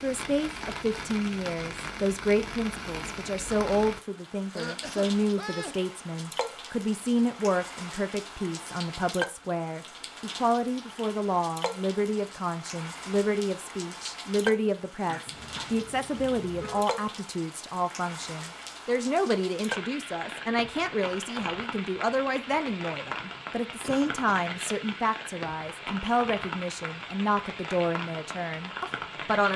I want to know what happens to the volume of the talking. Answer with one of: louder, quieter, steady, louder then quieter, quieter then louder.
steady.